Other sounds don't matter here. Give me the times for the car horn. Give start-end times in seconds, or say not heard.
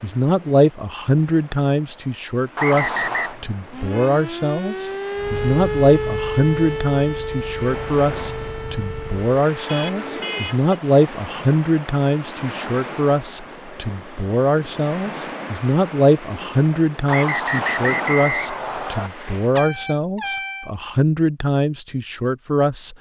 3.0-4.2, 9.7-10.8, 19.5-20.7.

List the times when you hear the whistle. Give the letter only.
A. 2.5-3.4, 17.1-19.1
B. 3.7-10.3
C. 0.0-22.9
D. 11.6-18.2
A.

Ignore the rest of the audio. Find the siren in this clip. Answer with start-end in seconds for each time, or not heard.
3.7-10.3.